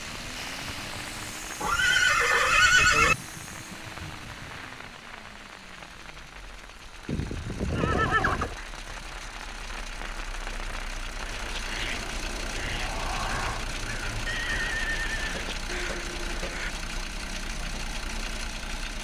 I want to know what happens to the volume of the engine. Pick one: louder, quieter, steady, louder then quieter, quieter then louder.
quieter then louder.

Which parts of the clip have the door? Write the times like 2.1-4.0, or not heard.
12.6-13.7.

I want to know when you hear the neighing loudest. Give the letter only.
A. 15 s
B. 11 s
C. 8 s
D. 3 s
D.